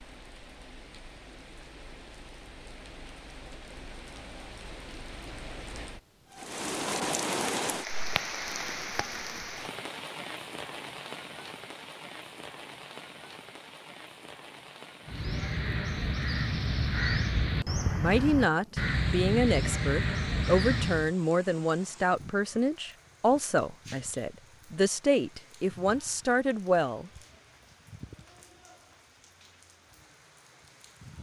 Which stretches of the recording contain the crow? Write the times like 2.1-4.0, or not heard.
15.1-21.1.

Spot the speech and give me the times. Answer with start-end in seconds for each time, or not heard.
18.0-27.1.